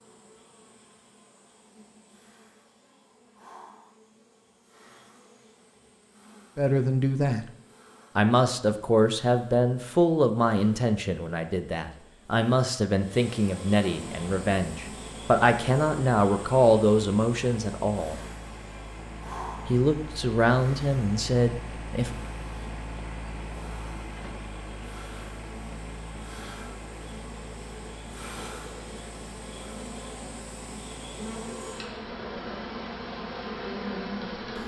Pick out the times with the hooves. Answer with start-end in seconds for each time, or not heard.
not heard.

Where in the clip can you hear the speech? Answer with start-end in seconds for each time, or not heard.
6.5-7.5, 8.2-18.2, 19.6-22.1.